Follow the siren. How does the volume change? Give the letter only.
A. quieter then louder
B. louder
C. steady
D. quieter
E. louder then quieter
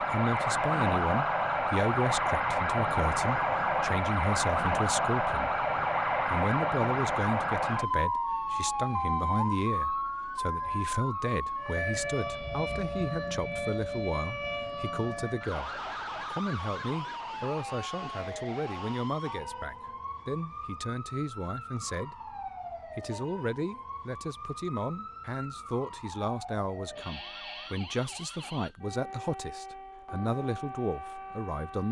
D.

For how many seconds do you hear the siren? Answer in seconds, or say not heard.
32 s.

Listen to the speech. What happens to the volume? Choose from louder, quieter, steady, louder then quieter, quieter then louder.
steady.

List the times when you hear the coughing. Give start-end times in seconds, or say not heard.
not heard.